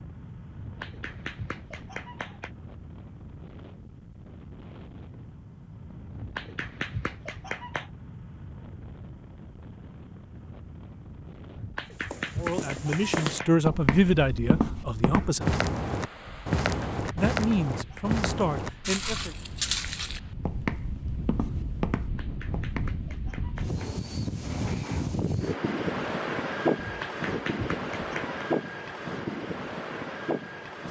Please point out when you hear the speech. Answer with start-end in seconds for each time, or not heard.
12.3-15.6, 17.1-19.4.